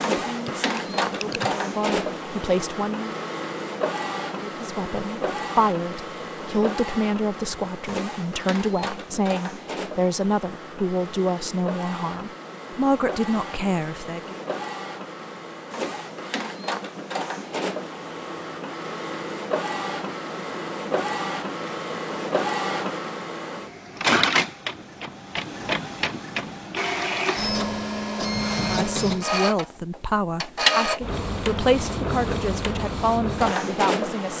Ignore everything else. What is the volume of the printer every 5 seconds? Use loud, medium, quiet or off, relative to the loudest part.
loud, medium, medium, medium, loud, loud, loud.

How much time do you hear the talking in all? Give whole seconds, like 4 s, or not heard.
19 s.